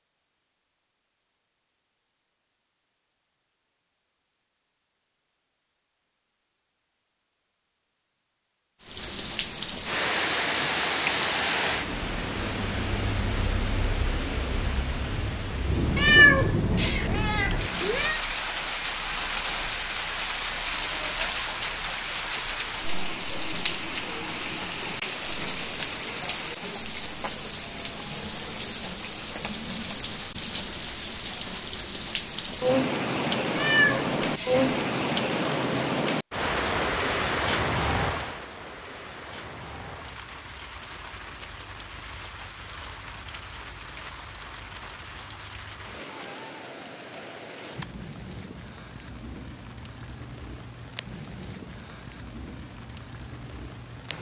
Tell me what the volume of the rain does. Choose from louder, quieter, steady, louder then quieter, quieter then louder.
quieter.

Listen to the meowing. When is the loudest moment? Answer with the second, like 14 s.
16 s.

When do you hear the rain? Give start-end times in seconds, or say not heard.
8.8-54.1.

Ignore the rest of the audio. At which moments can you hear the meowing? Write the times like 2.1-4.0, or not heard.
15.9-18.2, 33.5-34.7.